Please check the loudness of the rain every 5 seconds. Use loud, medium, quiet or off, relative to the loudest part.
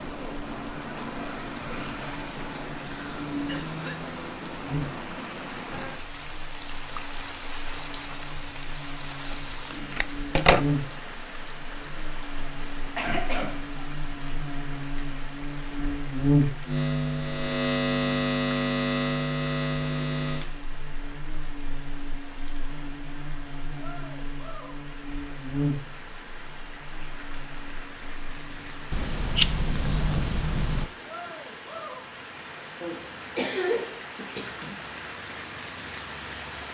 loud, loud, medium, medium, medium, medium, loud, loud.